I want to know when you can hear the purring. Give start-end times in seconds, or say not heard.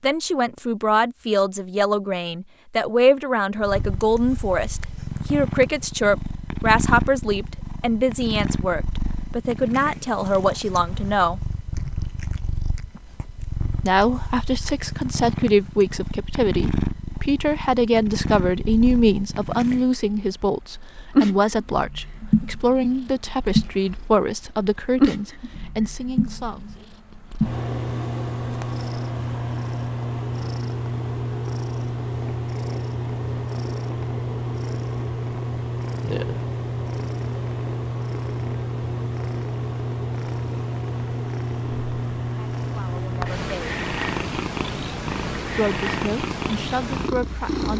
3.5-47.7.